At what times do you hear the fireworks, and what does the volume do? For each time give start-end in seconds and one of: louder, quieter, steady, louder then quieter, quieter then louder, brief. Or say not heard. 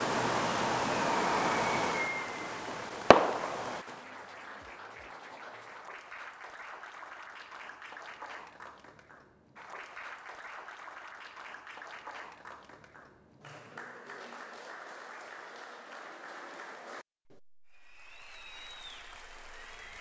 0.0-4.0 quieter then louder.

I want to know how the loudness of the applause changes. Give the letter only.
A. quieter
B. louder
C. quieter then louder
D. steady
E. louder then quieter
D.